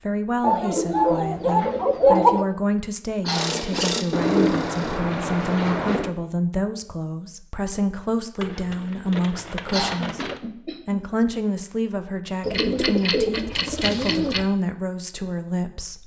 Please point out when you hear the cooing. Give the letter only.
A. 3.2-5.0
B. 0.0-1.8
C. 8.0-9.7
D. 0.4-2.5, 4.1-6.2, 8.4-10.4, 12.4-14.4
D.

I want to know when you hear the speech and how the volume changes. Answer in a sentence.
You can hear the speech from 0.0 to 16.0 s, at a steady volume.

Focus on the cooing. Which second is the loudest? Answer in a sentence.
The volume of the cooing peaks at 2 seconds.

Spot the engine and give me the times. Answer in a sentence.
The engine can be heard from 3.2 to 5.0 s.